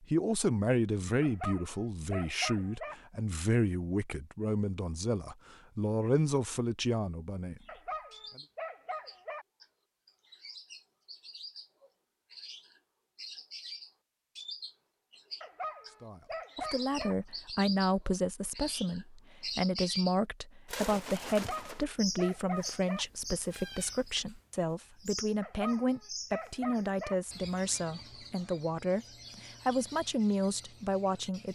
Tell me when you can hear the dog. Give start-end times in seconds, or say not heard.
1.2-3.0, 7.7-9.4, 15.4-17.1, 21.3-23.1, 25.4-27.1.